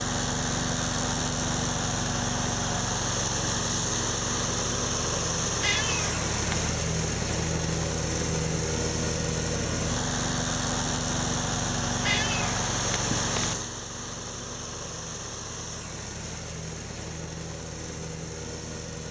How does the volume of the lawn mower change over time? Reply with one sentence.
The loudness of the lawn mower goes down.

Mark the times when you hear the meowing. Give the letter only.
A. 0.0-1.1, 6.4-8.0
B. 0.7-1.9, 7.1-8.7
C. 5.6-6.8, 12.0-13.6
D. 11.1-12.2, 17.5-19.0
C.